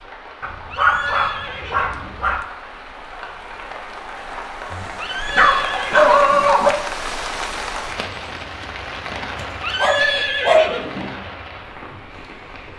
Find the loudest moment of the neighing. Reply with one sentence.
The volume of the neighing peaks at 10 seconds.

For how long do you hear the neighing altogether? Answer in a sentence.
The neighing can be heard for 5 seconds in total.